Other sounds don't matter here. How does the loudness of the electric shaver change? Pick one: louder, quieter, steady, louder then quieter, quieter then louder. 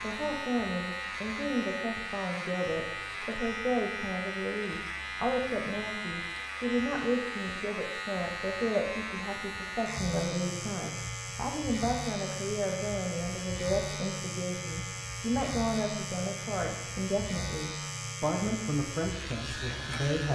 steady.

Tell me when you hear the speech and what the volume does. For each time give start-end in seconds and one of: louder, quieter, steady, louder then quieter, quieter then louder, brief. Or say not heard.
0.0-20.3 steady.